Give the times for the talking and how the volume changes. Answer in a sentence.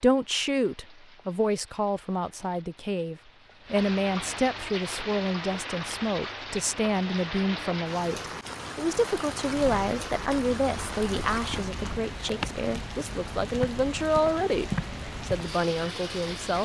You can hear the talking from 0.0 to 16.5 s, at a steady volume.